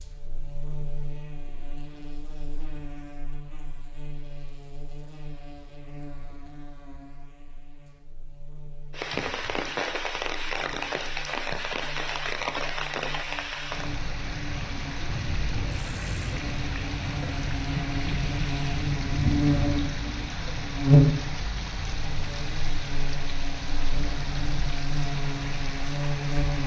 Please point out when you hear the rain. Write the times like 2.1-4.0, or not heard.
8.9-26.6.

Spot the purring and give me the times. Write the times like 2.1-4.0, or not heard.
not heard.